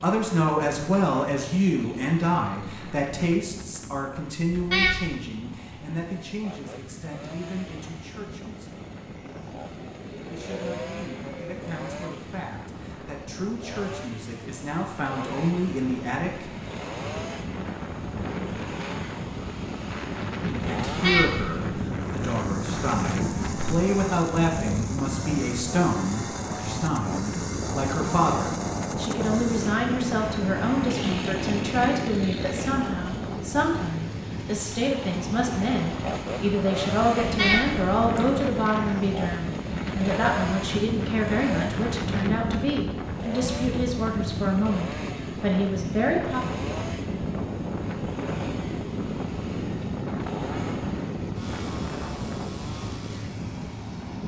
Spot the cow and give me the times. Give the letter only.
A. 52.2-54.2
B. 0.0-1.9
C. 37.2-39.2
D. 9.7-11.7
D.